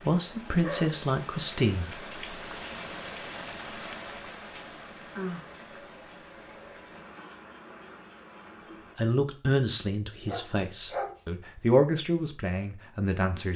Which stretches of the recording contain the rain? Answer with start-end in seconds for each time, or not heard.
0.0-8.9.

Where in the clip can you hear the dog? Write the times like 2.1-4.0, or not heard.
0.5-0.9, 10.2-11.2.